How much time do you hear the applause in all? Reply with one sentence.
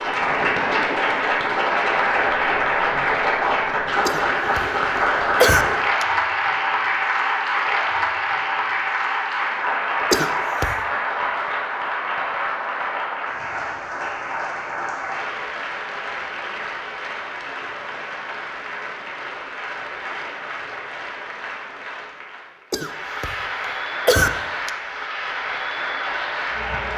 You can hear the applause for 27 seconds altogether.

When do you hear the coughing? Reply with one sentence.
You can hear the coughing from 4.0 to 4.7 s, from 5.4 to 6.0 s, from 10.1 to 10.8 s, from 22.7 to 23.4 s and from 24.1 to 24.7 s.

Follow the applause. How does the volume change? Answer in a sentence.
The volume of the applause goes down.